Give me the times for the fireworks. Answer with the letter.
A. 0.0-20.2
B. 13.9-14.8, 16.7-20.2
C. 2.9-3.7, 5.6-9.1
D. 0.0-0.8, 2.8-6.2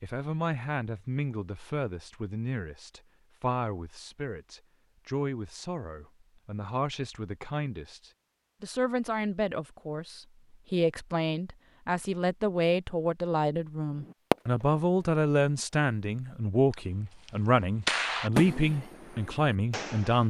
B.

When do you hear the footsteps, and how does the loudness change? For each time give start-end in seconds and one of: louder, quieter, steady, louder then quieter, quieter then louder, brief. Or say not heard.
not heard.